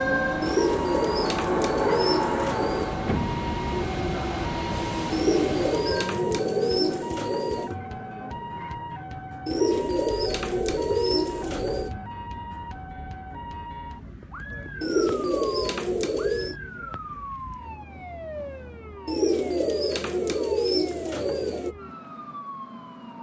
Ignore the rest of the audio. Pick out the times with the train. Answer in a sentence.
The train can be heard from 0.0 to 6.2 s.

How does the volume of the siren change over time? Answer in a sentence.
The volume of the siren goes down.